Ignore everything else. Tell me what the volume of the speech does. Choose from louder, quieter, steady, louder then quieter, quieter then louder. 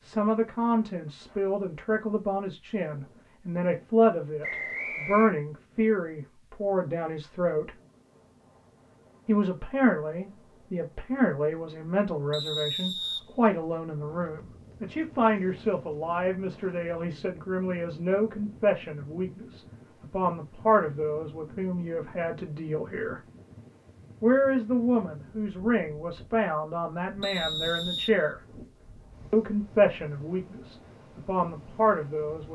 steady.